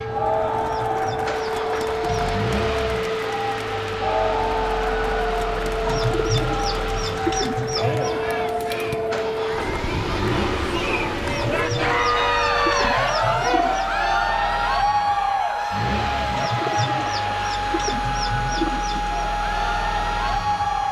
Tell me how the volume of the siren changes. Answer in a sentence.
The loudness of the siren stays about the same.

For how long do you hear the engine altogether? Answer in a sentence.
The engine can be heard for 21 seconds in total.